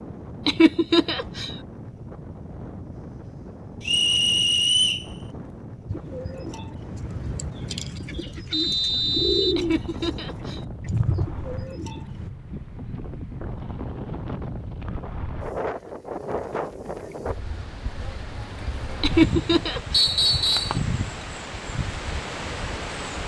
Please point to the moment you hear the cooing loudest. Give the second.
9 s.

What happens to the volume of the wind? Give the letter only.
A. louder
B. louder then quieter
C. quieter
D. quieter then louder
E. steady
A.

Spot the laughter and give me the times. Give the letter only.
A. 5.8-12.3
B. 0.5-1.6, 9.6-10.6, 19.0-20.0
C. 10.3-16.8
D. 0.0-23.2
B.